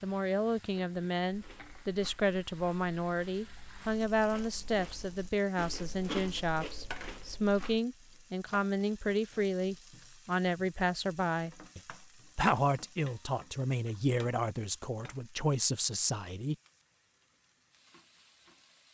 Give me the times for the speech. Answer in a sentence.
You can hear the speech from 0.0 to 16.6 s.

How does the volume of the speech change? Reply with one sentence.
The loudness of the speech stays about the same.